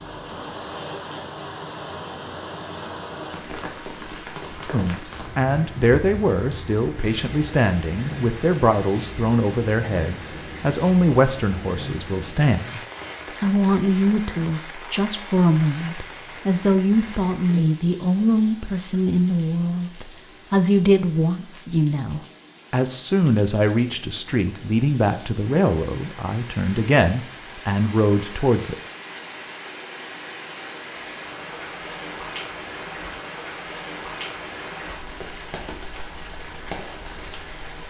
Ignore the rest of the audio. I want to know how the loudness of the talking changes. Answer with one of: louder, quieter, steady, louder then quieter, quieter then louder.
steady.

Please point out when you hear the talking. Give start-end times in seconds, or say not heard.
4.7-12.8, 13.4-28.8.